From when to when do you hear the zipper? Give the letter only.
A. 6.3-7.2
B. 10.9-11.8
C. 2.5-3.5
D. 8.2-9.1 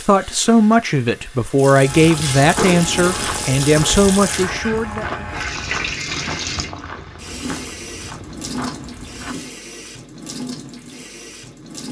C.